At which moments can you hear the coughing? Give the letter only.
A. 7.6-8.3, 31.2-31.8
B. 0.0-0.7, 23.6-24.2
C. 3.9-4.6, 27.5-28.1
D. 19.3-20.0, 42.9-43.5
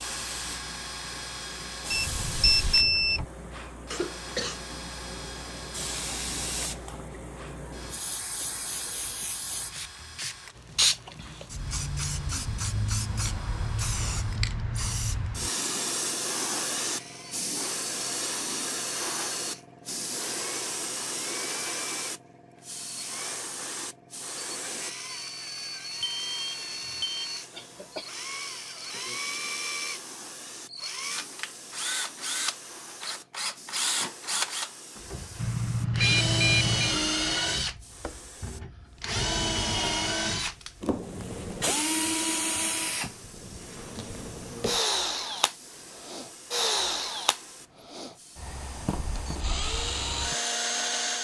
C.